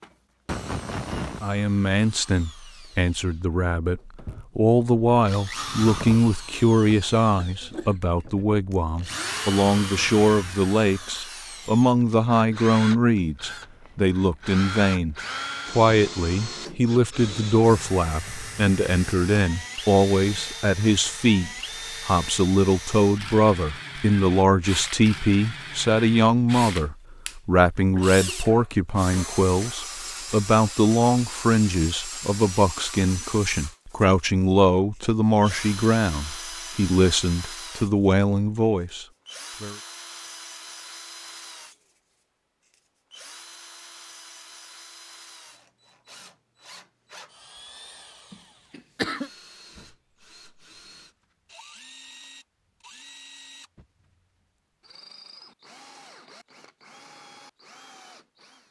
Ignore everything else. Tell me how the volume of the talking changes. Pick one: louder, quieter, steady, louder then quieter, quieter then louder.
steady.